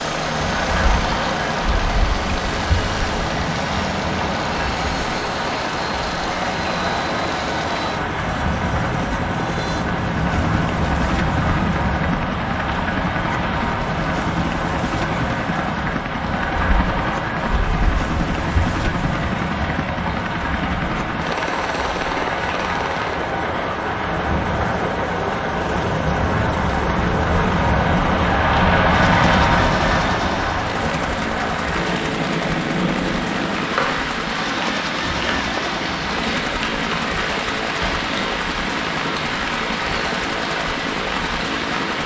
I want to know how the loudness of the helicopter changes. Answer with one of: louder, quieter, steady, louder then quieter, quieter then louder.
steady.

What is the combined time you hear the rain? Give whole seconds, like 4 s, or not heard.
42 s.